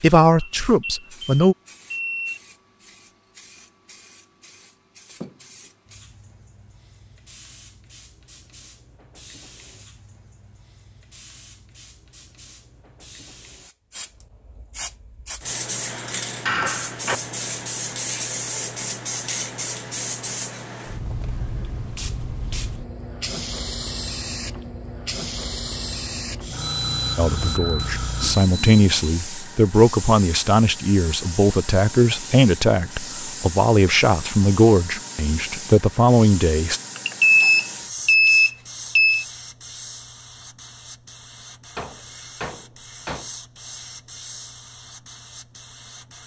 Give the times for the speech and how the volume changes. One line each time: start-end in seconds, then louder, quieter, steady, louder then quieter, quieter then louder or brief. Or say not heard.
0.0-1.6 brief
27.1-36.8 steady.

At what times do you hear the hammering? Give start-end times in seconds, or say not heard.
15.9-17.2, 41.8-43.3.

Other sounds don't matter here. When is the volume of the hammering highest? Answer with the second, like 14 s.
17 s.